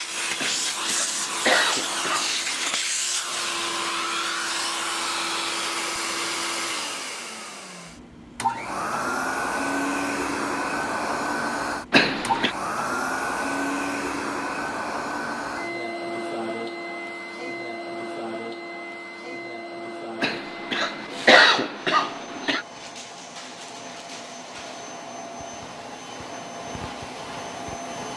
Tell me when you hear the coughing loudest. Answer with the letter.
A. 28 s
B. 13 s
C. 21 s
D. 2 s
C.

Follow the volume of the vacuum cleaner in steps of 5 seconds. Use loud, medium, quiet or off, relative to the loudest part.
loud, loud, loud, medium, medium, medium.